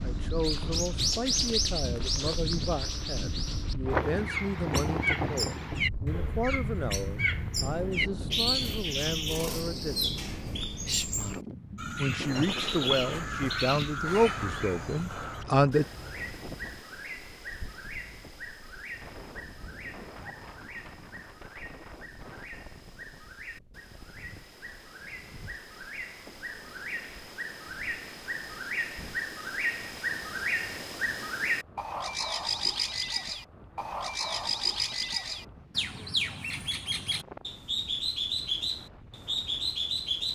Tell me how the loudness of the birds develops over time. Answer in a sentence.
The loudness of the birds goes down, then up.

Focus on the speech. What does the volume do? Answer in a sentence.
The loudness of the speech goes up.